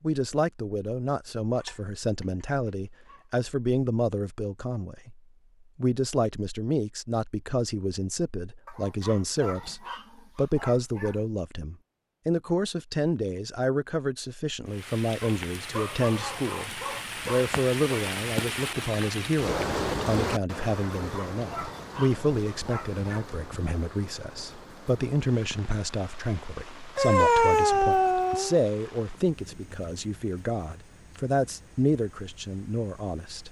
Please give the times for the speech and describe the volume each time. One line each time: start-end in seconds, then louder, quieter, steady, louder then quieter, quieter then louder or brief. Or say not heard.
0.0-33.4 steady.